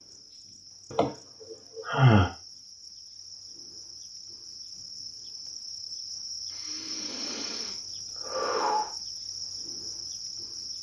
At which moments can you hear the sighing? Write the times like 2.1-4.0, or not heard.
0.9-2.3, 6.5-8.9.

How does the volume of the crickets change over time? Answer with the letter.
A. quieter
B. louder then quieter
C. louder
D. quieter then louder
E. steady
C.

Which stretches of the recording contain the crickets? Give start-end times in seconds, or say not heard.
0.0-10.7.